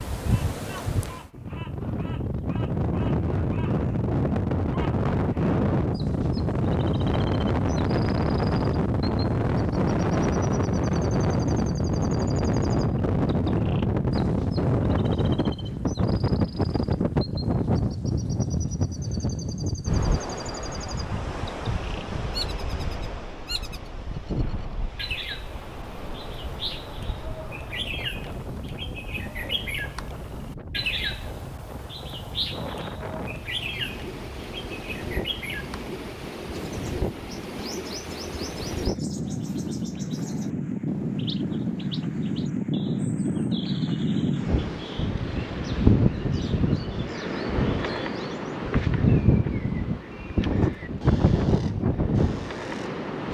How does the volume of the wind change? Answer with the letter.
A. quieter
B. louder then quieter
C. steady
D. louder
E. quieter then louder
E.